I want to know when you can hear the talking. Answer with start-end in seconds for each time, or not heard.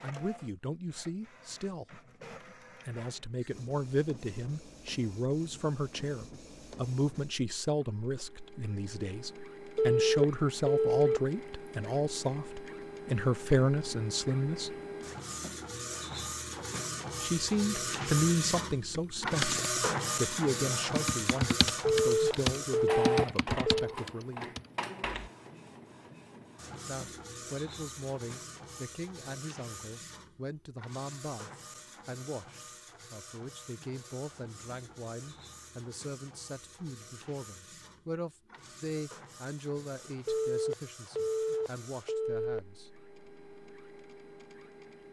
0.0-2.0, 2.9-14.7, 17.2-24.4, 26.9-42.9.